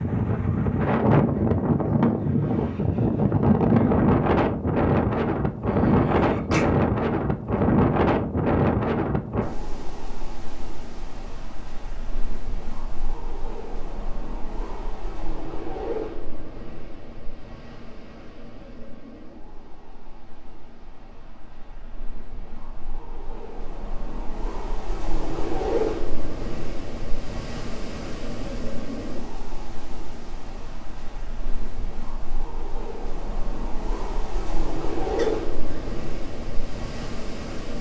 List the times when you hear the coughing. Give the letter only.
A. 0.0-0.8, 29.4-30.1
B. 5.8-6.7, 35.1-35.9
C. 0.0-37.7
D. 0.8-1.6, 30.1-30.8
B.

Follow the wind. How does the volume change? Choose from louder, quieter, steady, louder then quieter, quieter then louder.
quieter then louder.